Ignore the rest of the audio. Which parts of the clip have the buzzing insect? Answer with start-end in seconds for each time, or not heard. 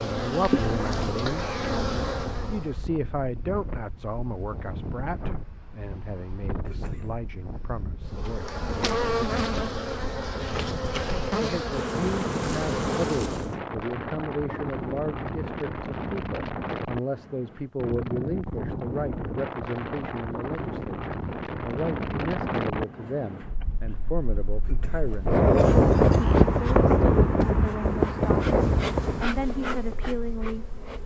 0.0-2.8, 8.1-13.6, 25.1-31.0.